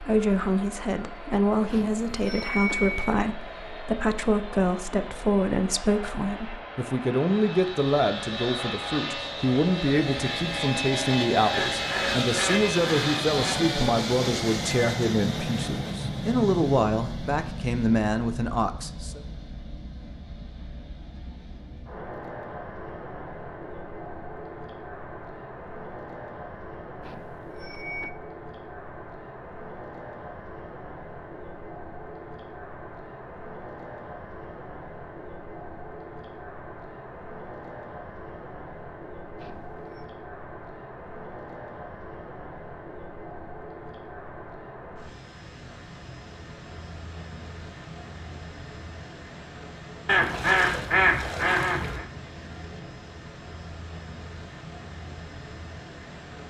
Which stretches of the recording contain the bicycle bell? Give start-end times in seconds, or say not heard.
1.7-3.1, 27.0-28.1, 39.4-40.0.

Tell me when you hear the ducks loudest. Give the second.
51 s.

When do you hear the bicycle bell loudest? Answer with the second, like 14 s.
3 s.